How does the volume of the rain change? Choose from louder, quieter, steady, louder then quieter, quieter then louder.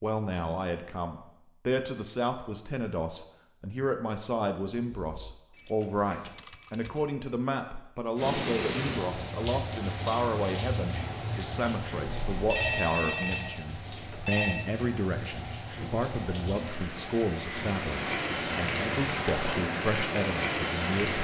quieter then louder.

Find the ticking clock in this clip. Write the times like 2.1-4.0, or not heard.
not heard.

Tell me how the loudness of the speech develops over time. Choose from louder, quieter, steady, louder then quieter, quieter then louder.
steady.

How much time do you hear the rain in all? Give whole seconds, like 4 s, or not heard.
13 s.